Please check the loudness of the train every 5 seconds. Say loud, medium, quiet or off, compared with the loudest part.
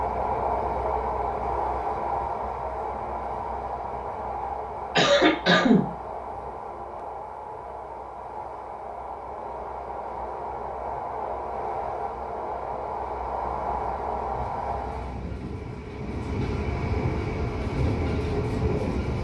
loud, medium, loud, loud.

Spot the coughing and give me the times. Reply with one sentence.
The coughing can be heard from 5.0 to 5.8 s.